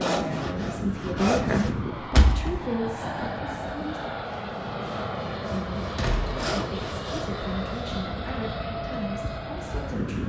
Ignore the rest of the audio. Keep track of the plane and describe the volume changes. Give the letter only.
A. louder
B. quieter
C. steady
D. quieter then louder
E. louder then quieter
C.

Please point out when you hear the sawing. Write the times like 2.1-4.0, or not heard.
0.0-1.8, 4.5-7.7.